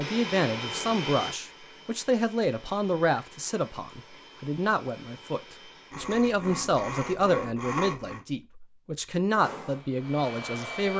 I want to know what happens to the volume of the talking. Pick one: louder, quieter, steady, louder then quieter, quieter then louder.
steady.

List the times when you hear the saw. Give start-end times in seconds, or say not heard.
5.9-8.2.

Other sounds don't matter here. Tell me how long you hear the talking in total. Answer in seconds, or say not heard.
11 s.